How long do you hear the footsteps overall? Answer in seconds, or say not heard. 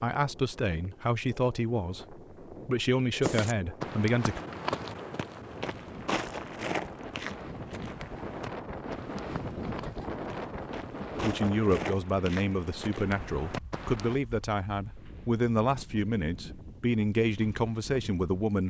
11 s.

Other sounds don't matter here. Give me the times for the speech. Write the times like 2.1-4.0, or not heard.
0.0-4.4, 11.2-18.6.